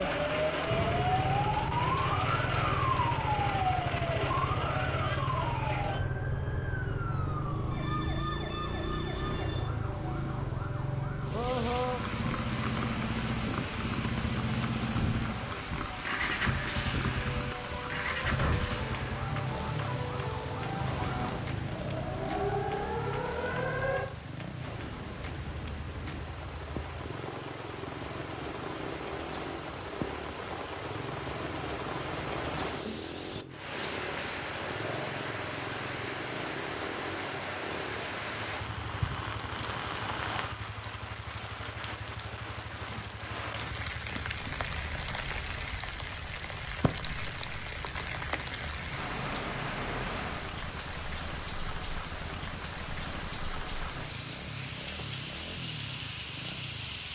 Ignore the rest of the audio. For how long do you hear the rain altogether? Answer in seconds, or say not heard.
46 s.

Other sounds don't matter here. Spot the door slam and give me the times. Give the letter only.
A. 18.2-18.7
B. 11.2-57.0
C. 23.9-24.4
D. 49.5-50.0
A.